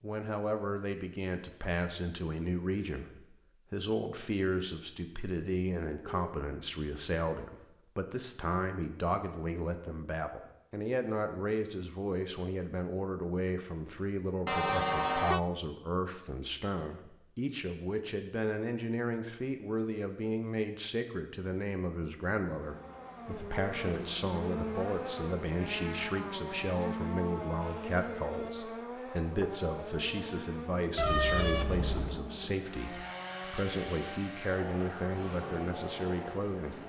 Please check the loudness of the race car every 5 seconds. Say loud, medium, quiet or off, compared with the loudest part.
off, off, off, off, loud, loud, loud, loud.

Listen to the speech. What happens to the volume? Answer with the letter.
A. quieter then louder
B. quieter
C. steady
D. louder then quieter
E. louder
C.